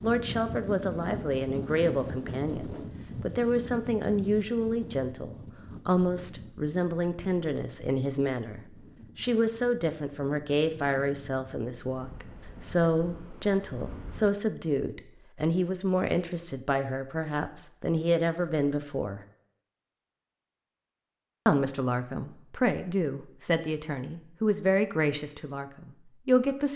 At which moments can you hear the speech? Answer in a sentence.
You can hear the speech from 0.0 to 19.2 s and from 21.4 to 26.7 s.